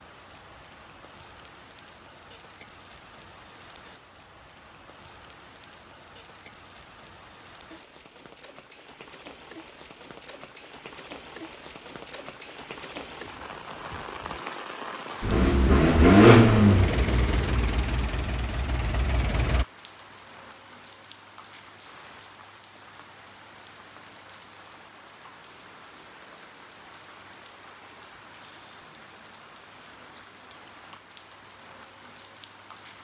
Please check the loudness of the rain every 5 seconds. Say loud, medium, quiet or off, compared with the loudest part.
medium, medium, loud, loud, medium, medium, medium.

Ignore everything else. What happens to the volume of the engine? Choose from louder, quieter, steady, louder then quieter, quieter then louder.
quieter.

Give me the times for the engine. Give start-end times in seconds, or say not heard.
15.2-19.6.